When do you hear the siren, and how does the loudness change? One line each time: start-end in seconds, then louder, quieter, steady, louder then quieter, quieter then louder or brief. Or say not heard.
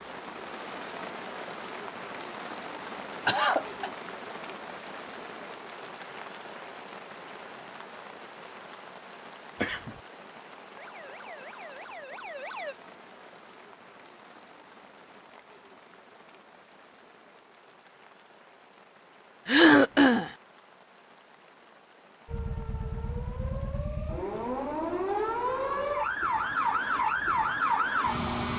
10.8-12.8 brief
22.2-28.5 louder.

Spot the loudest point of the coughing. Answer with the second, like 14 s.
20 s.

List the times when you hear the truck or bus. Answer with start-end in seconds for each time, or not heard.
not heard.